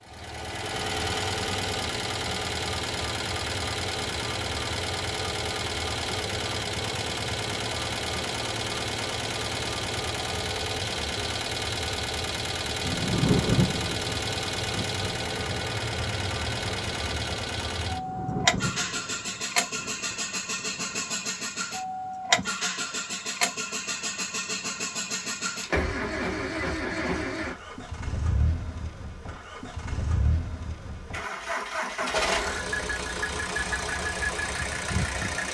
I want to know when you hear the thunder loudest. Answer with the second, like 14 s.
13 s.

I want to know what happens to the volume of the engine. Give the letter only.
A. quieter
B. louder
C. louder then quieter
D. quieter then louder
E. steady
E.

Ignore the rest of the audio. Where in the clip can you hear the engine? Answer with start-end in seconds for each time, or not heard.
0.0-35.4.